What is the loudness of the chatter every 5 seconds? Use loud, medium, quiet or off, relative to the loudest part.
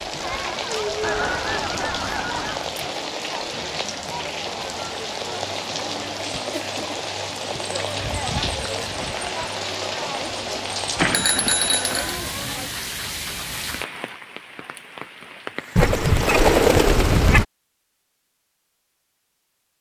loud, loud, loud, off.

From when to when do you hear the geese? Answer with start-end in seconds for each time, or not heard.
1.0-2.7, 8.0-9.4, 15.8-17.4.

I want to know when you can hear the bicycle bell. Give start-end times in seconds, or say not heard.
10.9-12.2.